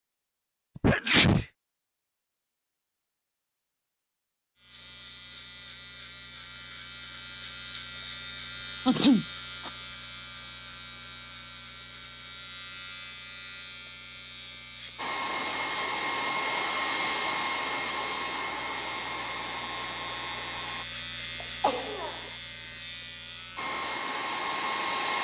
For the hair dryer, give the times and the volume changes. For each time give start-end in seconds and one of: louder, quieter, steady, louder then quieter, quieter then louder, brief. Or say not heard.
14.9-20.9 quieter
23.6-25.1 brief.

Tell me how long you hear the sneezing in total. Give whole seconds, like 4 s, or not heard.
2 s.